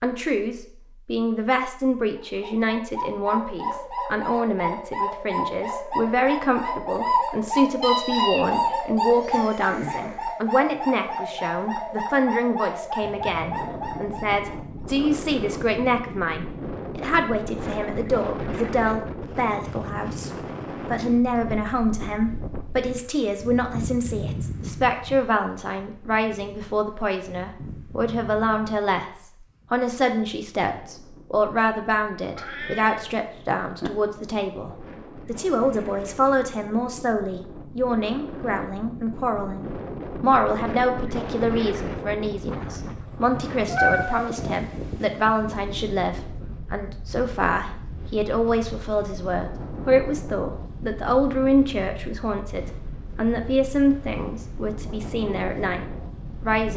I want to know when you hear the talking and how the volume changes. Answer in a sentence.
The talking can be heard from 0.0 to 56.7 s, at a steady volume.